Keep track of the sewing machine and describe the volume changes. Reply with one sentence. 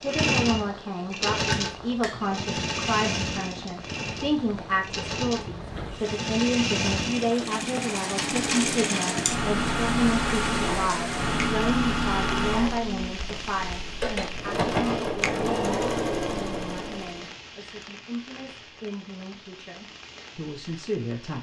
The volume of the sewing machine stays about the same.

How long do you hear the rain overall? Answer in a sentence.
You can hear the rain for 21 seconds altogether.